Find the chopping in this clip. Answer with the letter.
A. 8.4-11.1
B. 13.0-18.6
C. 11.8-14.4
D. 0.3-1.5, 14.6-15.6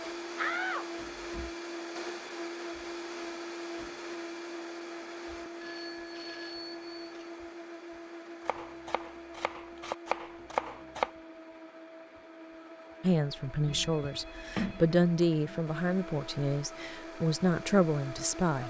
A.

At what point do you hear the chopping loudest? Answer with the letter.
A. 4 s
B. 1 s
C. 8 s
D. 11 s
D.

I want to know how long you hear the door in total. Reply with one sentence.
You can hear the door for 2 seconds altogether.